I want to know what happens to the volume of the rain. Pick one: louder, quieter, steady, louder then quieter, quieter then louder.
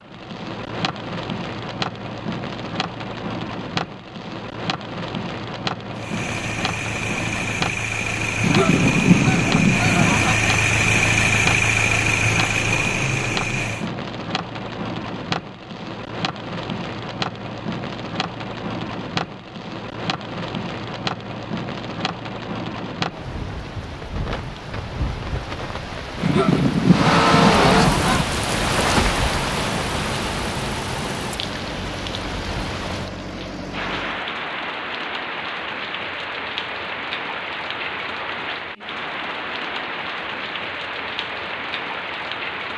steady.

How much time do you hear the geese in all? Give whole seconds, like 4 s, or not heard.
4 s.